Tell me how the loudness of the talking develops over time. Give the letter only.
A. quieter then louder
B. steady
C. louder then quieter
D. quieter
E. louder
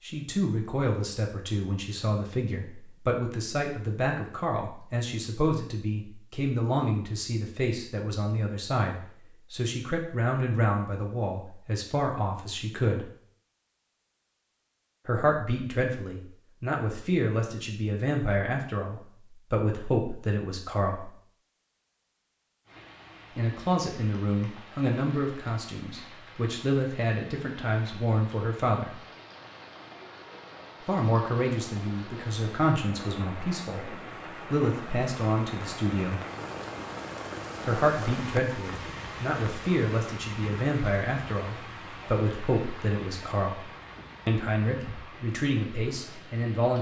B.